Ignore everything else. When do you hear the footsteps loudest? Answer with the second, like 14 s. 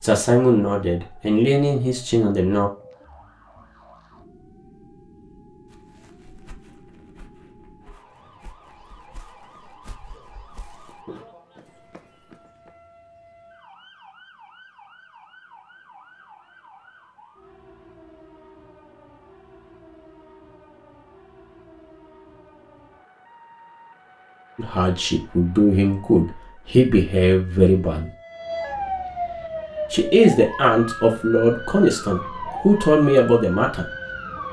11 s.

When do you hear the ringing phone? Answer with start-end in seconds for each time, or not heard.
not heard.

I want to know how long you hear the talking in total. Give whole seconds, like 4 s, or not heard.
10 s.